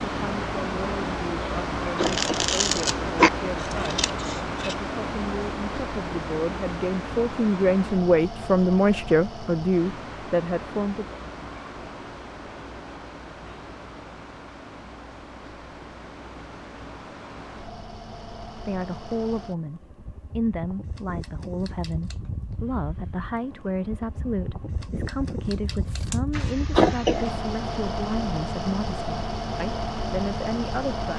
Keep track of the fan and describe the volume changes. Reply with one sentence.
The loudness of the fan goes down, then up.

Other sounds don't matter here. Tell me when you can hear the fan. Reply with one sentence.
The fan can be heard from 0.0 to 31.1 s.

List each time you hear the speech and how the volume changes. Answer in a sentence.
The speech can be heard from 0.0 to 11.2 s, getting louder; and from 18.6 to 31.1 s, at a steady volume.